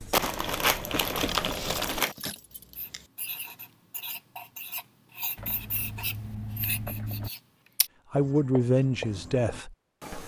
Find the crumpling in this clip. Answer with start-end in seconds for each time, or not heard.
0.1-2.1.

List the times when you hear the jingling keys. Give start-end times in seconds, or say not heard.
1.1-3.0, 5.3-7.3.